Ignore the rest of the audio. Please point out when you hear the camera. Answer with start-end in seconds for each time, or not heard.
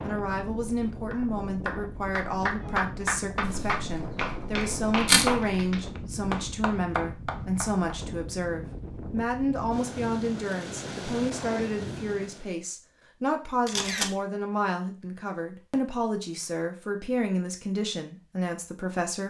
3.4-5.4, 13.7-14.2.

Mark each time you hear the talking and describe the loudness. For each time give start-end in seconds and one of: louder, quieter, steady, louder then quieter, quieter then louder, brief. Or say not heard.
0.0-19.2 steady.